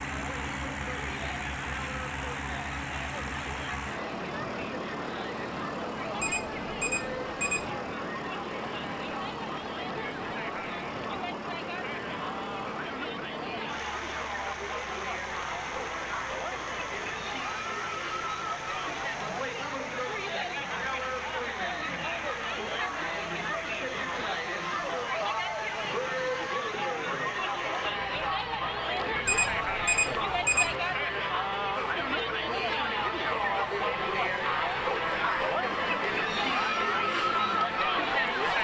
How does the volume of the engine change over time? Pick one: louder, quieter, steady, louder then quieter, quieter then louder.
quieter.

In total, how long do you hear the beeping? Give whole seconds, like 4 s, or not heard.
3 s.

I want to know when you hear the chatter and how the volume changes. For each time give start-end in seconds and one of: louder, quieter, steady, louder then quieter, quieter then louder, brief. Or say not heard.
0.0-38.5 louder.